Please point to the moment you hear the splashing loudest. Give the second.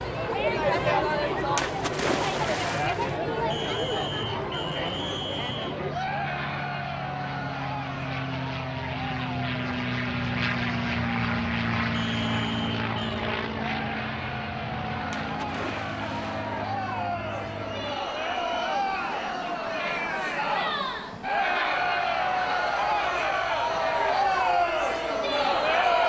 2 s.